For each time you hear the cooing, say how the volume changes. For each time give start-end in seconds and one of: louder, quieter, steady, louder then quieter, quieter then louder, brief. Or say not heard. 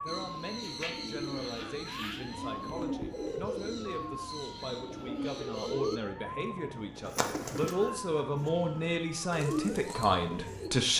0.1-10.7 steady.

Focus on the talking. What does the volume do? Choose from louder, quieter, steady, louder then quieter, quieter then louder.
louder.